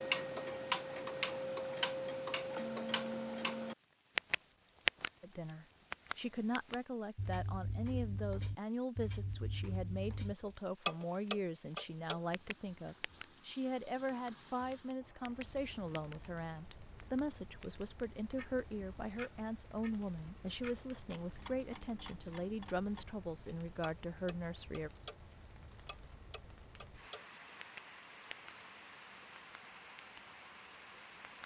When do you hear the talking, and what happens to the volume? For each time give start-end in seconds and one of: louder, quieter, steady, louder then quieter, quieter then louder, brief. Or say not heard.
5.2-24.9 steady.